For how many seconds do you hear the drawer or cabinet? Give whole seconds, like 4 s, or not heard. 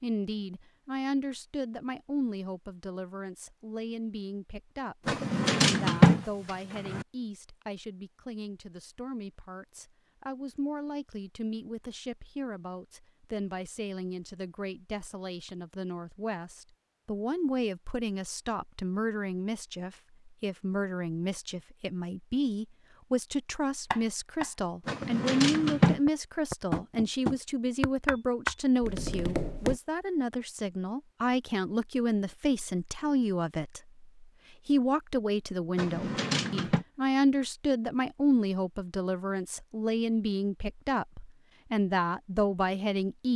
4 s.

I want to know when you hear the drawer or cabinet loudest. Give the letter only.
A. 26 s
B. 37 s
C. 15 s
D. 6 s
D.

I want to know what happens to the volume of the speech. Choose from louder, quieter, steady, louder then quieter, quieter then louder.
louder.